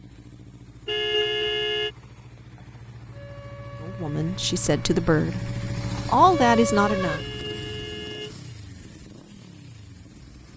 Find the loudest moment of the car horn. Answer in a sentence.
The volume of the car horn peaks at 1 second.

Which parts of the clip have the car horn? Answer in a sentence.
You can hear the car horn from 0.8 to 1.9 s and from 7.2 to 8.5 s.